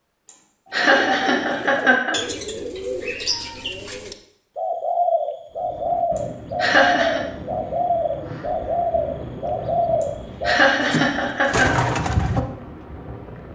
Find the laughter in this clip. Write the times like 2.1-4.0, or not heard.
0.7-2.2, 6.6-7.2, 10.4-11.7.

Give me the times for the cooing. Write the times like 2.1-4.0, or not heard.
0.7-12.4.